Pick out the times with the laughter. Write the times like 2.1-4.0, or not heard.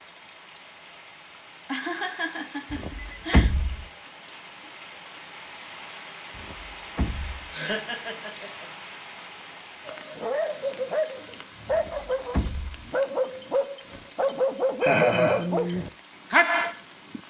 1.4-3.5, 7.5-8.7, 14.8-15.4.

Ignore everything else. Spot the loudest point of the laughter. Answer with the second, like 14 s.
15 s.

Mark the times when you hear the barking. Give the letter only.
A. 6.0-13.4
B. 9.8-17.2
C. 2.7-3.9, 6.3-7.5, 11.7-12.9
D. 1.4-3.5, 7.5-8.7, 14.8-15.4
B.